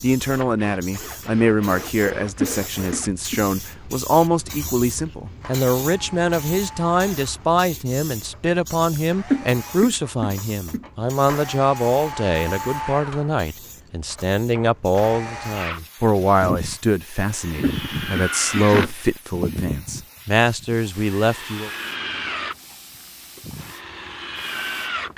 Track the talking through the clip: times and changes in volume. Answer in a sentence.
You can hear the talking from 0.0 to 21.7 s, at a steady volume.